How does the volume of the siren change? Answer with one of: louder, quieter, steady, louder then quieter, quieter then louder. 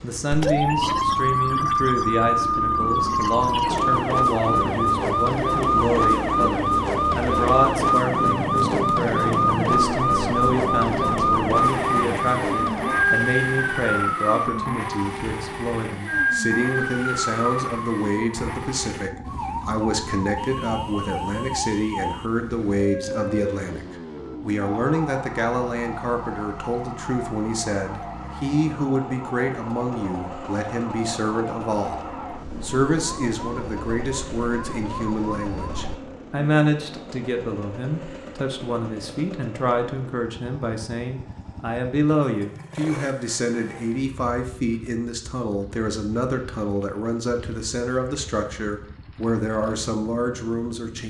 quieter.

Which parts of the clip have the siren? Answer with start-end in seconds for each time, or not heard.
0.3-36.0.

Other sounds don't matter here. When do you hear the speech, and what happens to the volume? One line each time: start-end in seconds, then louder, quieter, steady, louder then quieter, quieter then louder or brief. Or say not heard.
0.0-32.0 steady
32.6-51.0 steady.